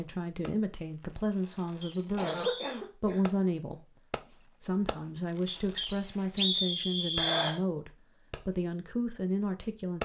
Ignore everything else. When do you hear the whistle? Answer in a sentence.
You can hear the whistle from 1.8 to 2.5 s and from 5.8 to 7.5 s.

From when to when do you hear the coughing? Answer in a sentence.
You can hear the coughing from 1.5 to 3.4 s and from 7.2 to 7.6 s.